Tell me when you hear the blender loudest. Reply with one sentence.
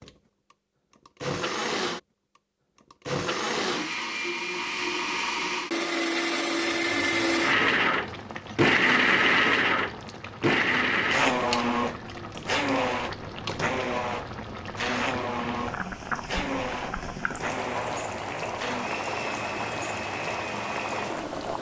The loudest moment of the blender is at 9 seconds.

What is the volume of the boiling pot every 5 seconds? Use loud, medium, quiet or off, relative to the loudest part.
off, medium, medium, loud, loud.